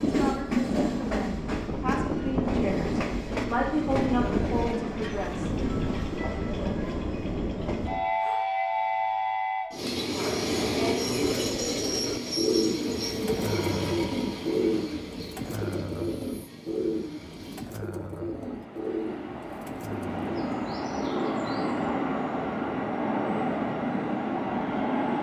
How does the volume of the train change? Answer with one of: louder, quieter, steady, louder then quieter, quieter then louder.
quieter then louder.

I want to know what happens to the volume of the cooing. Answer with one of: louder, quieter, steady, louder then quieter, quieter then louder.
quieter.